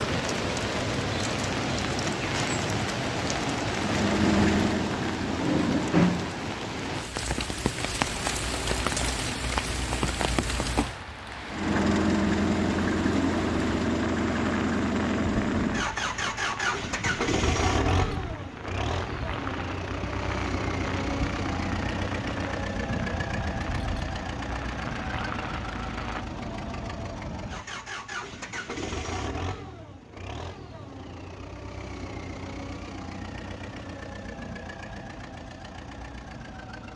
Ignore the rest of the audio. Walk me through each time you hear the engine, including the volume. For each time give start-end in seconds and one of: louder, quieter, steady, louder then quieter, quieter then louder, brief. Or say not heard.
3.7-6.1 brief
11.5-36.9 quieter.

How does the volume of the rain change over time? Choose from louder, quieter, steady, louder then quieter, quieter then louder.
quieter.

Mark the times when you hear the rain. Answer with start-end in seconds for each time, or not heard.
0.0-26.2.